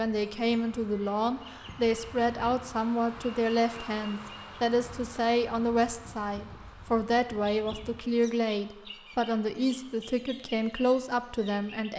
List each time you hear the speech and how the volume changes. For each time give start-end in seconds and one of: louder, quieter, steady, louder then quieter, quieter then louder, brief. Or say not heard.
0.0-11.9 steady.